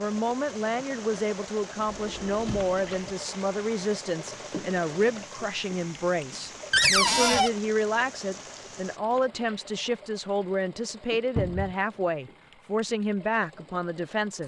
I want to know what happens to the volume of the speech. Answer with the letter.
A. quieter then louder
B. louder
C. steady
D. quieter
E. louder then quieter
C.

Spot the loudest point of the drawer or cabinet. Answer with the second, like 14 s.
7 s.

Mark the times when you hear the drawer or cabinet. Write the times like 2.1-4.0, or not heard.
1.9-3.1, 6.7-7.5, 11.3-11.8.